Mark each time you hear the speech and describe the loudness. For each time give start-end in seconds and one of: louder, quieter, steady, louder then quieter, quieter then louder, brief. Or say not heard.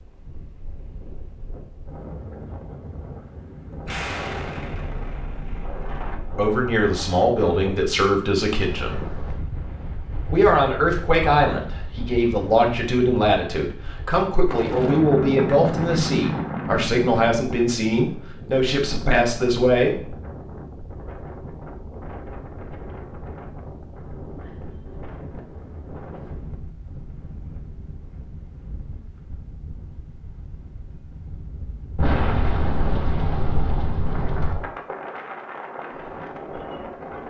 6.3-9.1 brief
10.2-20.1 steady.